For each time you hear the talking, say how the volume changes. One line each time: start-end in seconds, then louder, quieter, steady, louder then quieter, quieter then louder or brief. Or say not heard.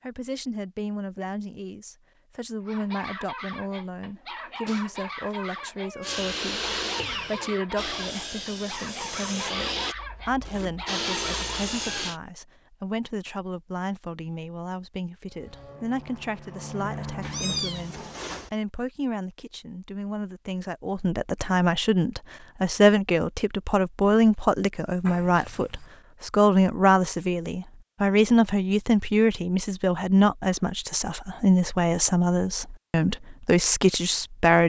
0.0-34.6 louder.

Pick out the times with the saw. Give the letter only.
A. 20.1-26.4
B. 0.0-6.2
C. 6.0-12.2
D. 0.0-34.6
C.